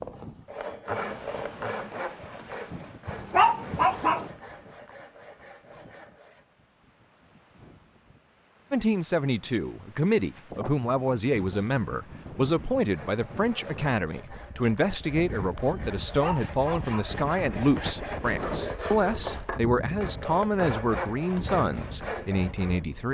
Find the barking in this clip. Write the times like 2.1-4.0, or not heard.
3.0-4.3, 16.1-17.1.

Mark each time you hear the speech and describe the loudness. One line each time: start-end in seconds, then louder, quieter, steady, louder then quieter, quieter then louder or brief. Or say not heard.
8.7-23.0 steady.